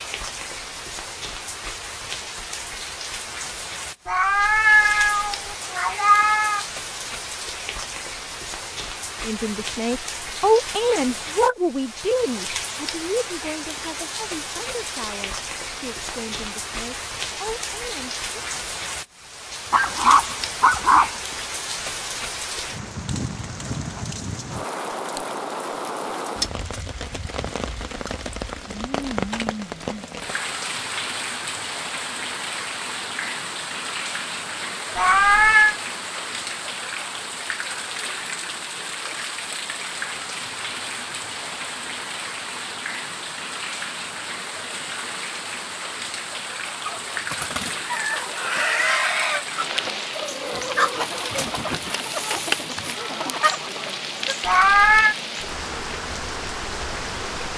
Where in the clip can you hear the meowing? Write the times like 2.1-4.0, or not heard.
4.0-6.7, 35.0-35.8, 54.5-55.1.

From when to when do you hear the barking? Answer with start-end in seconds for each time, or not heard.
19.7-21.1.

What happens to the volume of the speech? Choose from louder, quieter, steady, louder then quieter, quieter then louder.
quieter.